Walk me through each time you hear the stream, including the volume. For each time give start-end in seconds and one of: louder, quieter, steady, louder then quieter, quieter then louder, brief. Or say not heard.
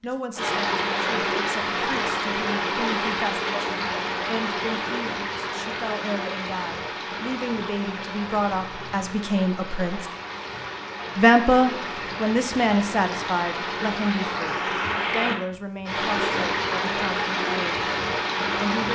0.0-18.9 quieter then louder.